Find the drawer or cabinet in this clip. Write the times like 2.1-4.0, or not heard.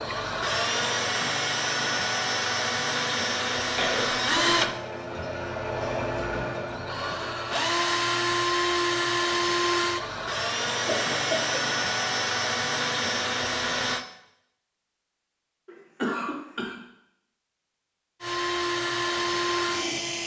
not heard.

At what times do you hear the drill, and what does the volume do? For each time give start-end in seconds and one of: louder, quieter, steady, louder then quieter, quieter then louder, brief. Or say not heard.
0.0-14.1 steady
18.2-20.2 brief.